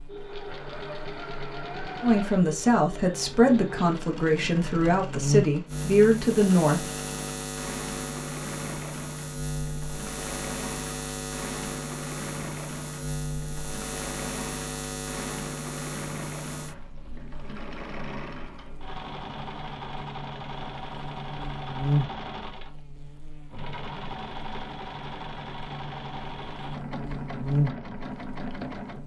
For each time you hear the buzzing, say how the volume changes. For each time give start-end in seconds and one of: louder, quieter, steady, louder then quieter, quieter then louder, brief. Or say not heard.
0.0-29.0 steady.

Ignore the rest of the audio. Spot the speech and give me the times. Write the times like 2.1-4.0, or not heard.
2.0-7.0.